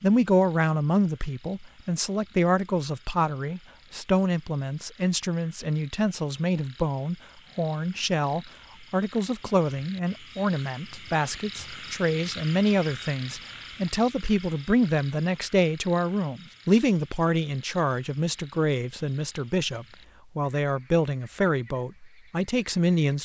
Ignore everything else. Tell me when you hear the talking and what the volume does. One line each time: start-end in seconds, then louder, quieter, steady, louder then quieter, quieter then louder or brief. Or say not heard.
0.0-23.1 steady.